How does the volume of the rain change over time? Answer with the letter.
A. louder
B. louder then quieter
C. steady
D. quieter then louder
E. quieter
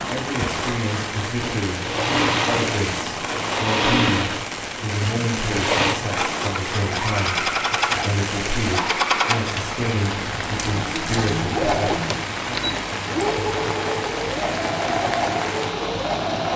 C.